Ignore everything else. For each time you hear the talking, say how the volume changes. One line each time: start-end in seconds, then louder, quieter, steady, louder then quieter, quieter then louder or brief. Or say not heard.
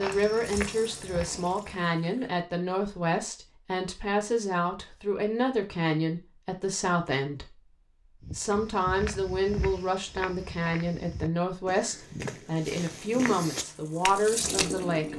0.0-15.1 steady.